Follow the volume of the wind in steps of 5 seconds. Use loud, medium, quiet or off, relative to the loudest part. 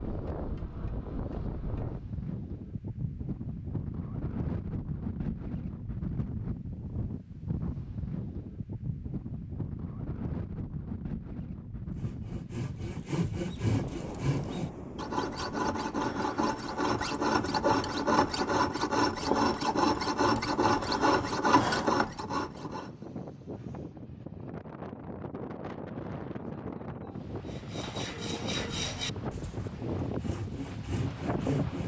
loud, loud, loud, medium, medium, loud, loud.